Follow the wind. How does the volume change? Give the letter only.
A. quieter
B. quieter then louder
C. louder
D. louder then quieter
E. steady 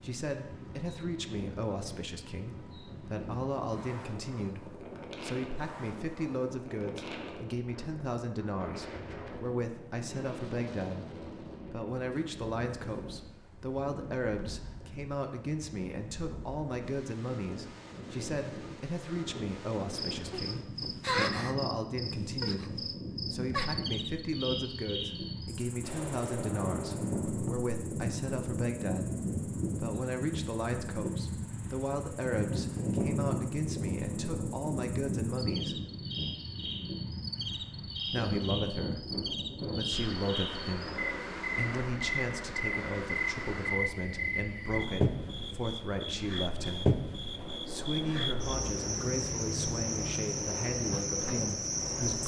D.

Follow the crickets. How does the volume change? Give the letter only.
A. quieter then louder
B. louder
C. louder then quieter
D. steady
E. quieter
A.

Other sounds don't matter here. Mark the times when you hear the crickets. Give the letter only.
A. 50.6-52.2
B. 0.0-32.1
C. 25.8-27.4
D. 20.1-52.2
D.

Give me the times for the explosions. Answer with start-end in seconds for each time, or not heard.
25.8-27.4.